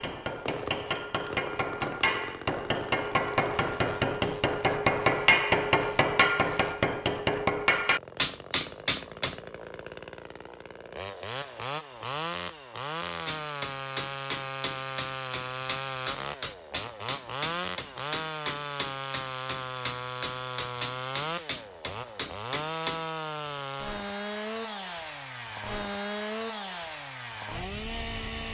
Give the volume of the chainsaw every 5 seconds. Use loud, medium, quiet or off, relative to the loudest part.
medium, medium, loud, loud, loud, loud.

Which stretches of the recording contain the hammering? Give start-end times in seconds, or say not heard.
0.0-9.4, 13.2-23.1.